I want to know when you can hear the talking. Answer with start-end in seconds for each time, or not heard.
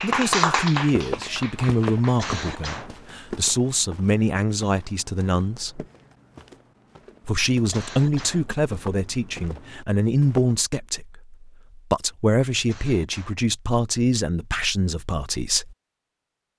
0.0-5.8, 7.2-15.8.